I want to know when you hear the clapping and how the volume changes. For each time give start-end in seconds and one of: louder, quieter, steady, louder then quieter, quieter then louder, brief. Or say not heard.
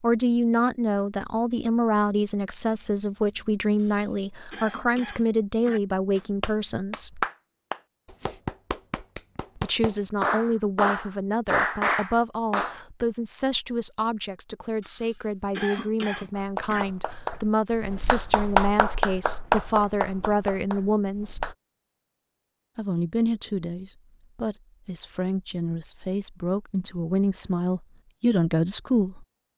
6.2-12.8 quieter then louder
16.3-21.6 louder then quieter.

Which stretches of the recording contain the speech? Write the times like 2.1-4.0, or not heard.
0.0-7.2, 9.6-21.5, 22.8-29.2.